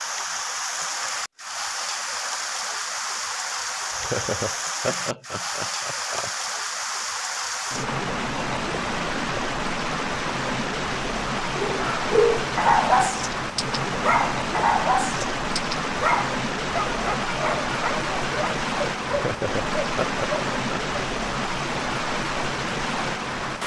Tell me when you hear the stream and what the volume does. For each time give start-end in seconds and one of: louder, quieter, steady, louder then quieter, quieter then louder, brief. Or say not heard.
0.0-23.6 steady.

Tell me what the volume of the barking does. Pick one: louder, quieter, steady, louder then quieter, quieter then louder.
quieter.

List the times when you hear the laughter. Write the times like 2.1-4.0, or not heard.
3.8-6.3, 19.1-21.1.